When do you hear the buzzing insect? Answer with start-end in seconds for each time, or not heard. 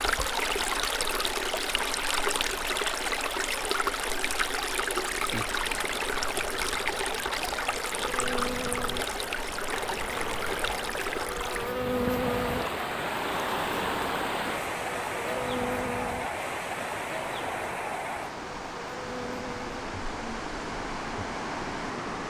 5.1-22.1.